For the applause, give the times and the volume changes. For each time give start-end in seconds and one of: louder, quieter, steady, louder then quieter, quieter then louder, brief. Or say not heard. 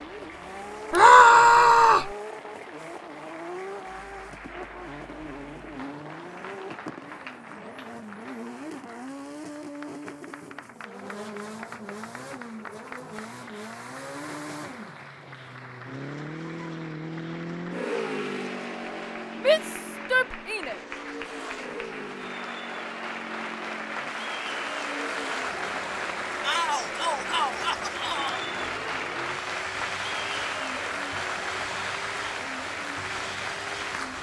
0.0-34.1 louder.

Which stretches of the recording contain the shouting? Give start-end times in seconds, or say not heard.
0.9-2.1, 19.4-20.8, 26.4-28.4.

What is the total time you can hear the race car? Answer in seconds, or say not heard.
34 s.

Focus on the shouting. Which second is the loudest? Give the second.
1 s.